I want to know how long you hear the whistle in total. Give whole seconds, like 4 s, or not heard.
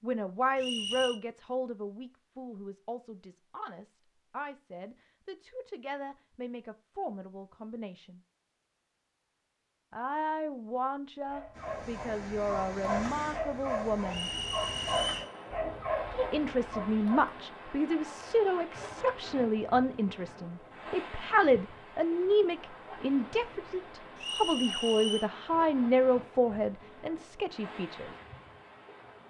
3 s.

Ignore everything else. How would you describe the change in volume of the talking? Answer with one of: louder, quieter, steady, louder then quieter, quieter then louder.
louder.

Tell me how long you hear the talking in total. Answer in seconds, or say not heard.
25 s.